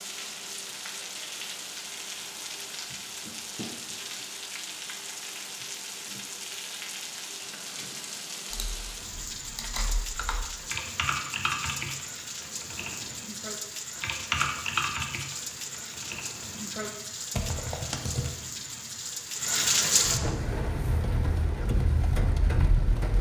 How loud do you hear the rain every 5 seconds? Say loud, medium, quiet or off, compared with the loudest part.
medium, medium, medium, loud, loud.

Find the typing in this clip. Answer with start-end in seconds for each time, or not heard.
8.5-18.3.